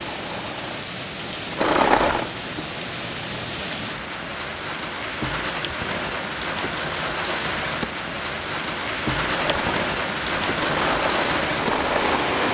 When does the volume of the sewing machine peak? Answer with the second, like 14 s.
2 s.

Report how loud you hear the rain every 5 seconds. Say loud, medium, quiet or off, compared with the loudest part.
medium, loud, loud.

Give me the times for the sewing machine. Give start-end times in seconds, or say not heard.
0.0-2.3, 9.2-12.3.